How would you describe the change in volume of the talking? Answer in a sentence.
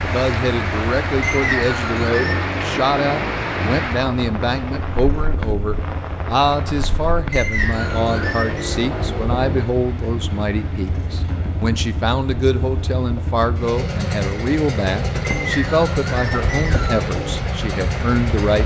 The loudness of the talking stays about the same.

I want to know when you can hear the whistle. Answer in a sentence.
The whistle can be heard from 1.2 to 2.5 s, from 7.3 to 8.7 s and from 15.2 to 17.1 s.